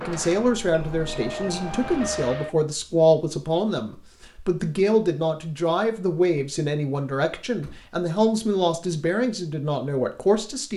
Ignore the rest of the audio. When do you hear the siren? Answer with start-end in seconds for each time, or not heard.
0.0-2.5.